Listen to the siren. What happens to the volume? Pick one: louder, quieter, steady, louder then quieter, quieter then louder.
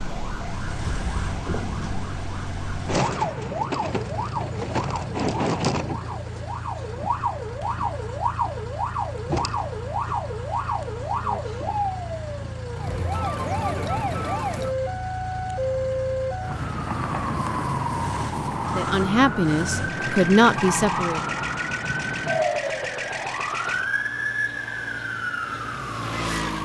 steady.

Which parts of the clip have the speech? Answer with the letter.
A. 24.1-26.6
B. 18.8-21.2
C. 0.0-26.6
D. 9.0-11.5
B.